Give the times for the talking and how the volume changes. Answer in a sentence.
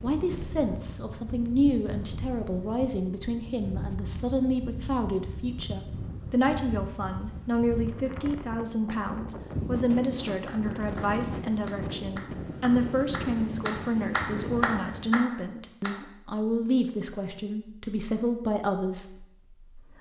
The talking can be heard from 0.0 to 19.9 s, at a steady volume.